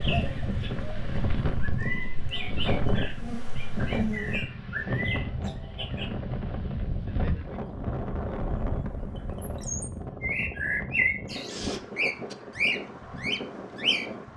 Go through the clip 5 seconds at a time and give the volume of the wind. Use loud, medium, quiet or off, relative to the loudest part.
loud, loud, medium.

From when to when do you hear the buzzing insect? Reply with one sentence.
You can hear the buzzing insect from 0.0 to 4.5 s.